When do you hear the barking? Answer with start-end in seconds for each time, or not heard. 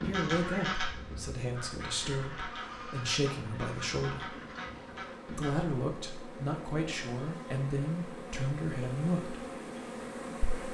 not heard.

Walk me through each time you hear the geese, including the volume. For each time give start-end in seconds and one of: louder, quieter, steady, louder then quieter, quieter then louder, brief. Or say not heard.
0.0-5.5 quieter.